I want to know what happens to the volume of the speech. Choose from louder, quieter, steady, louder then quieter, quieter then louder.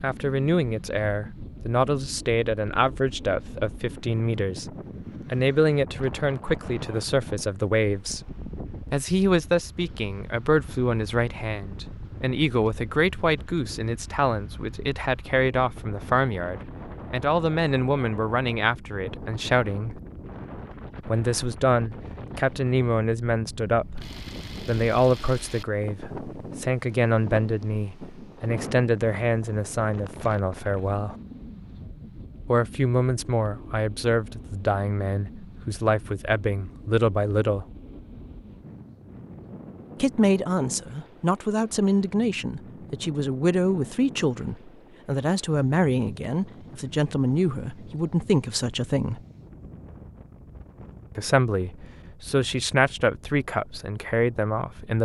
steady.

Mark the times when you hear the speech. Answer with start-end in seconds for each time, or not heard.
0.0-8.2, 8.9-20.0, 21.1-31.1, 32.5-37.6, 40.0-49.2, 51.1-54.9.